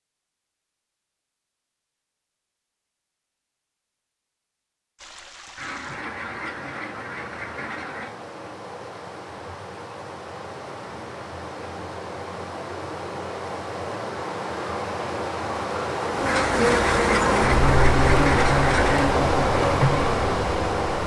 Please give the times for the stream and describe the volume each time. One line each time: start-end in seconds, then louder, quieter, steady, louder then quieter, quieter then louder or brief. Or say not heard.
5.0-21.0 louder.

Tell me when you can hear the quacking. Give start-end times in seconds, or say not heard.
5.5-8.1, 16.2-19.1.